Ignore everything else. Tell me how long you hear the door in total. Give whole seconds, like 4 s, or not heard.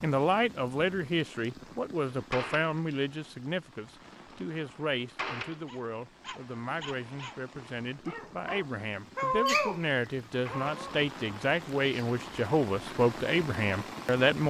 2 s.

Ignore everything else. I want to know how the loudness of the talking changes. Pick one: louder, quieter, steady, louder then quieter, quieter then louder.
quieter then louder.